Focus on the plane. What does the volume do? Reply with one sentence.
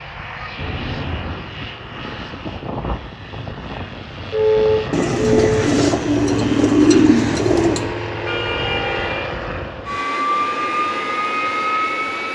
The volume of the plane goes up.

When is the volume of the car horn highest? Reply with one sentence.
The volume of the car horn peaks at 5 seconds.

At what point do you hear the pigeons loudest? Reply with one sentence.
The loudest moment of the pigeons is at 7 seconds.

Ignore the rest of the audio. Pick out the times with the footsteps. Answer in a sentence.
The footsteps can't be heard in this clip.